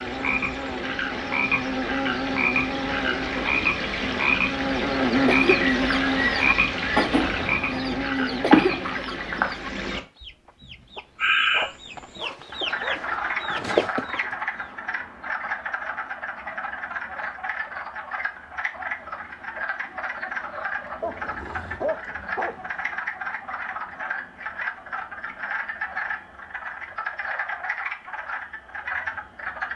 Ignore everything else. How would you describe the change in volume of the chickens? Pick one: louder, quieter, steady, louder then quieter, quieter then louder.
quieter then louder.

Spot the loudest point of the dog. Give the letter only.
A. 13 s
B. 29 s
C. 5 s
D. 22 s
D.